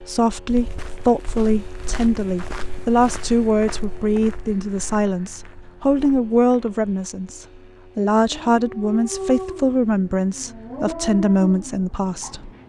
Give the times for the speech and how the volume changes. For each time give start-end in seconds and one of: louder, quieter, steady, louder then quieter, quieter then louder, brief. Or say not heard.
0.0-12.5 steady.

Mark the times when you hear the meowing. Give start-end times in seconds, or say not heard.
not heard.